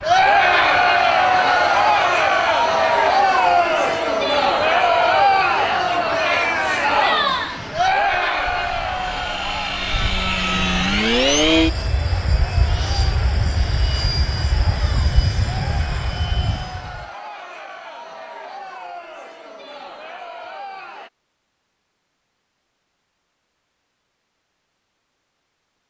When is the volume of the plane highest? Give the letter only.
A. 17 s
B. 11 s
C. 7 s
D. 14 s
B.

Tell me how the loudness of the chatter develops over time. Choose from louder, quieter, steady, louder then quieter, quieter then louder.
quieter.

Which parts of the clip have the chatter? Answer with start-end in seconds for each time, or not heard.
0.0-21.1.